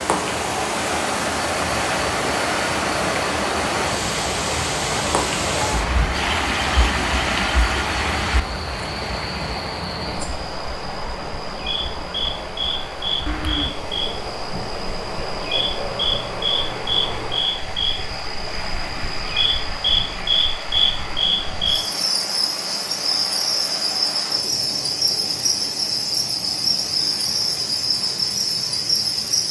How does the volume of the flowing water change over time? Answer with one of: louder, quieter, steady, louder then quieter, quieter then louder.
quieter.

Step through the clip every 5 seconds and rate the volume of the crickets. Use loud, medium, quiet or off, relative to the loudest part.
medium, medium, medium, loud, loud, loud.